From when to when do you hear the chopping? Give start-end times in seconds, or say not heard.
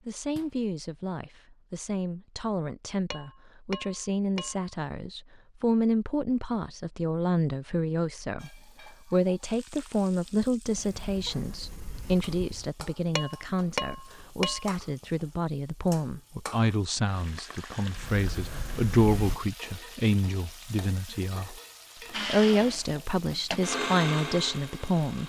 not heard.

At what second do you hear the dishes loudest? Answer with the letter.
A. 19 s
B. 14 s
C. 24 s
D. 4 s
B.